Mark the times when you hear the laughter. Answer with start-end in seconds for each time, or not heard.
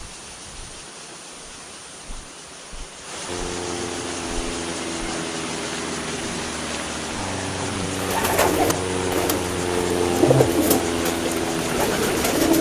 not heard.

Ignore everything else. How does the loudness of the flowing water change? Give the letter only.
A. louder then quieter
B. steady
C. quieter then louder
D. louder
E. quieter
D.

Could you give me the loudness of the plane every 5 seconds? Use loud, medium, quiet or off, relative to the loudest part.
medium, loud, loud.